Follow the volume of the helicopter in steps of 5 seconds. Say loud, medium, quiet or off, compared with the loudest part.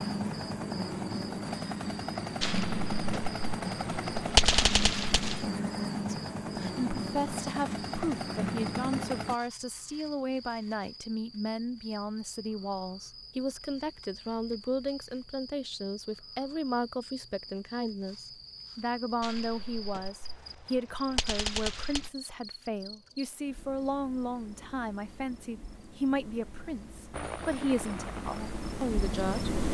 loud, loud, off, off, off, medium.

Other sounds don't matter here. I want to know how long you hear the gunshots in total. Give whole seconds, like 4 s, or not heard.
6 s.